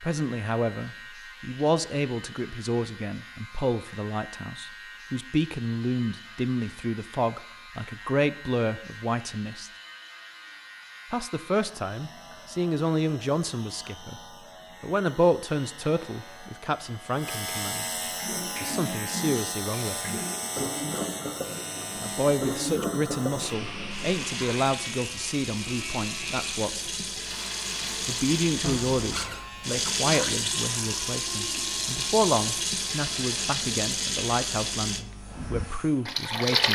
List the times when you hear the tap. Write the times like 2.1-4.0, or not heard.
18.1-36.7.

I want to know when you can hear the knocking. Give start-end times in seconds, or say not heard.
28.6-29.4.